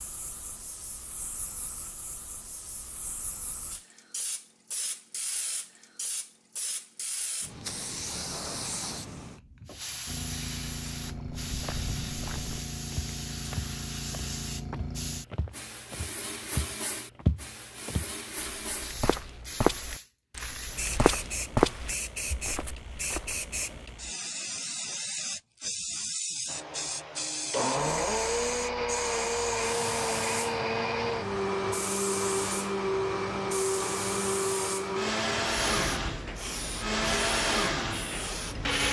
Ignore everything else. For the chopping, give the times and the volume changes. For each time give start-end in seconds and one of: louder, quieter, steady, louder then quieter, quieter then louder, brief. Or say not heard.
not heard.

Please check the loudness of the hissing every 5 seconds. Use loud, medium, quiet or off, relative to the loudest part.
medium, loud, loud, medium, loud, loud, loud, loud.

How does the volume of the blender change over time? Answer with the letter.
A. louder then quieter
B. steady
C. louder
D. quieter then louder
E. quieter
B.